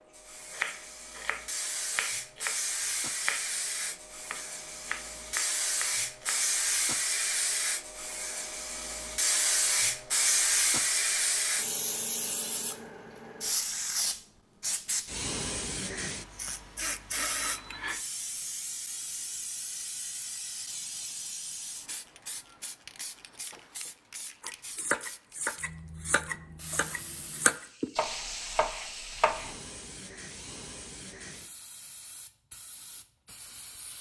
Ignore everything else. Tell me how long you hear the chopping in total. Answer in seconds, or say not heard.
11 s.